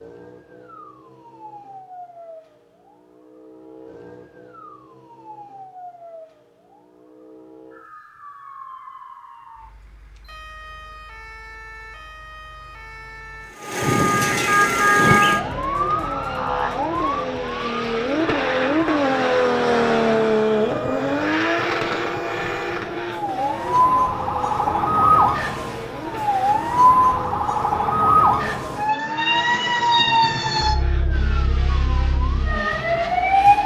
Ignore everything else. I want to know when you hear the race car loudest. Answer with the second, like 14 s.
20 s.